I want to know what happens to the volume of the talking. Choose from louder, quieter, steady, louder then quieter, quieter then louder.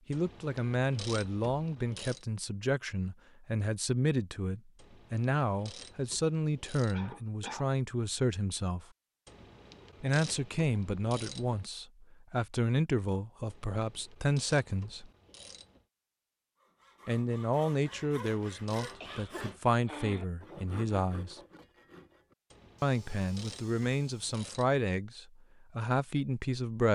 steady.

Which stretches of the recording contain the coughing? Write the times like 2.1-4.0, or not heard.
6.9-7.7, 19.0-20.2.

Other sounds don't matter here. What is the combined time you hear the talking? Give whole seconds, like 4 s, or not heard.
22 s.